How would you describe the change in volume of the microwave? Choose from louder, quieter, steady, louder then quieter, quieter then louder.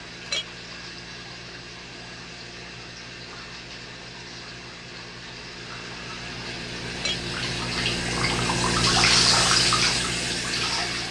louder.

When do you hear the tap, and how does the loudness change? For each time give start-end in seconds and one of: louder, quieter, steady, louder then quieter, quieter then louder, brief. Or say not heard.
0.0-11.0 louder.